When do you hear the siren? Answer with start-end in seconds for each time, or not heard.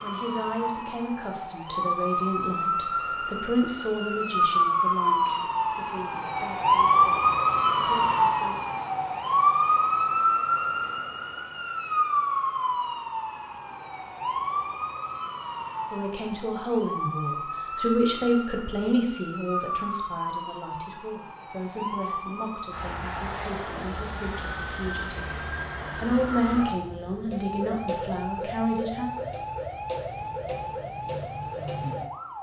0.0-32.3.